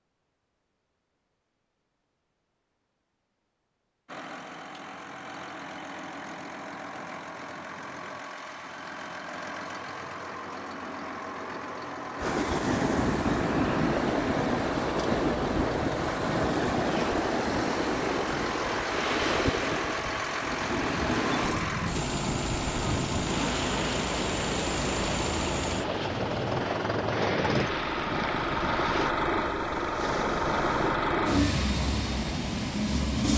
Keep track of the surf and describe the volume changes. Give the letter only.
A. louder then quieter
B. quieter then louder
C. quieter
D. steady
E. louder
C.